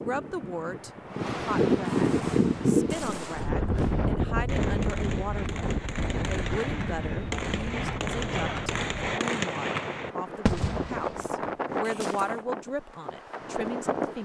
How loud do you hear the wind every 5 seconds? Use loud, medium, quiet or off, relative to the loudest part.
loud, medium, medium.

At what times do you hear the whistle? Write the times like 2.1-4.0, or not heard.
not heard.